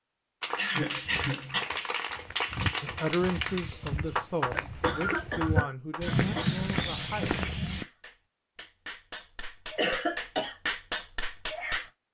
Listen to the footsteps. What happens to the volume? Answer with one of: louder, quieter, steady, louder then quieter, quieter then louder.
louder.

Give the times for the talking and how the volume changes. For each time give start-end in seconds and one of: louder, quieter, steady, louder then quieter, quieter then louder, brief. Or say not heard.
2.8-7.4 quieter.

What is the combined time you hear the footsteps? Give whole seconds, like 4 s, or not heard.
7 s.